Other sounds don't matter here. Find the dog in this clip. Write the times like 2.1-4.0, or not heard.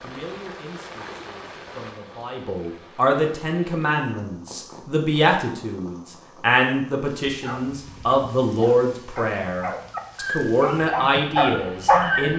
7.2-12.3.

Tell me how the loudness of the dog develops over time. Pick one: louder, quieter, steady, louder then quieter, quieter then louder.
louder.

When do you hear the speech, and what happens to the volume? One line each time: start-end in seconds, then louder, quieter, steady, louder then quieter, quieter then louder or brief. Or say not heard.
0.0-12.3 louder.